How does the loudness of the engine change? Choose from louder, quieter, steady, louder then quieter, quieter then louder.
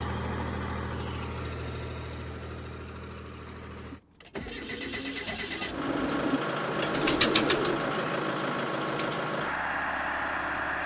quieter then louder.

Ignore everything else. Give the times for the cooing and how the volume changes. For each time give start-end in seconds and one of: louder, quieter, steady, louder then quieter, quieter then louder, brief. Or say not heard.
3.9-9.3 louder then quieter.